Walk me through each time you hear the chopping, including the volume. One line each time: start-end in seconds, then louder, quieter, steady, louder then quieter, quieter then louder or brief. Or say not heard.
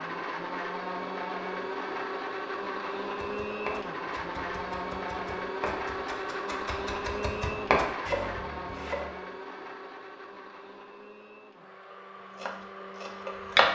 3.1-9.1 quieter then louder
12.3-13.7 brief.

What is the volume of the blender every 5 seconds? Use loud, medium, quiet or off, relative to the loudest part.
loud, loud, medium.